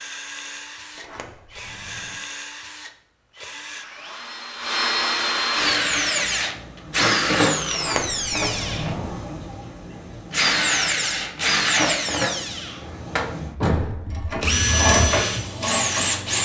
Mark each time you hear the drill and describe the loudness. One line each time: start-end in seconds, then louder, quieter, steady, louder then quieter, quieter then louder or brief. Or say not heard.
0.0-16.4 louder.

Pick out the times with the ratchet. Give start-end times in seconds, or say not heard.
14.1-16.2.